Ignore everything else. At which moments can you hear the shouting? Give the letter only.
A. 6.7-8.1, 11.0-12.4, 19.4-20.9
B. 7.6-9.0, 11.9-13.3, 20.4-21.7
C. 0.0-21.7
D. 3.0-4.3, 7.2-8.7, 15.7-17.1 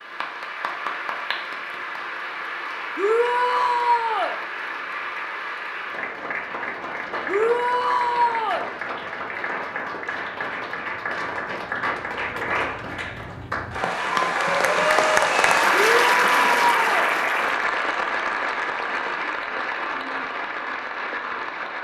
D.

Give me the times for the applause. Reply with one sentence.
You can hear the applause from 0.0 to 21.7 s.